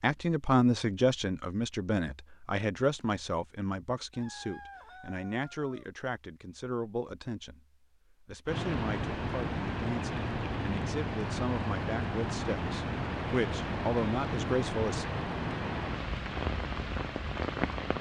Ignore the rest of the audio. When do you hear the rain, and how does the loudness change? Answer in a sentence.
The rain can be heard from 8.4 to 17.9 s, at a steady volume.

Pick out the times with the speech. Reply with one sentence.
You can hear the speech from 0.0 to 15.1 s.